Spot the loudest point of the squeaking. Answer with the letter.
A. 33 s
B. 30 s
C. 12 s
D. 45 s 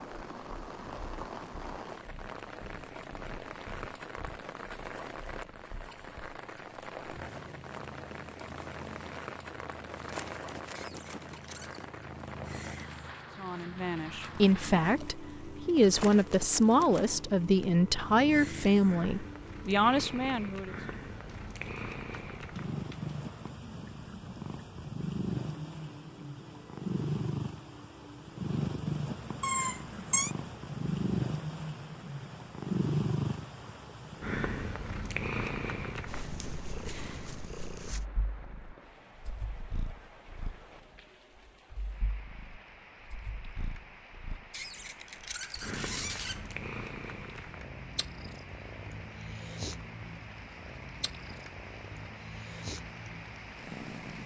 B.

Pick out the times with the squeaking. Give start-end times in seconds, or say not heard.
10.7-11.8, 29.4-30.4, 44.5-46.4.